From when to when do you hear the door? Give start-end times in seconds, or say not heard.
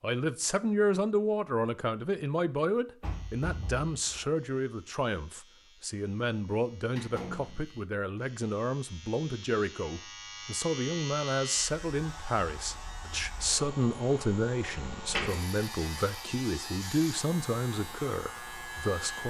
3.0-4.3, 7.0-7.8, 14.8-15.4.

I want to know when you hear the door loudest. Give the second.
15 s.